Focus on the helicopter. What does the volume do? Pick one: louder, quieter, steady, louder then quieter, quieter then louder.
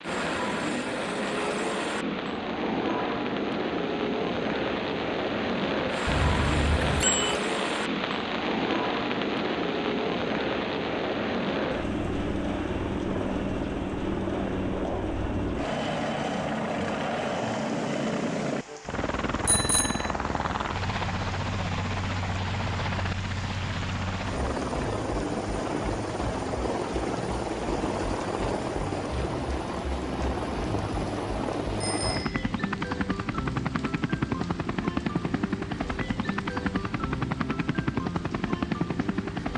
steady.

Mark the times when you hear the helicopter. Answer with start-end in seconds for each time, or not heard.
0.0-39.5.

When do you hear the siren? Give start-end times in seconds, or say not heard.
not heard.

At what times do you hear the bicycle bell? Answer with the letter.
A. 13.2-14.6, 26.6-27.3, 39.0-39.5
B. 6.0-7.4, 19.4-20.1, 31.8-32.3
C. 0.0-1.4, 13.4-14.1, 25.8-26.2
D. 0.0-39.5
B.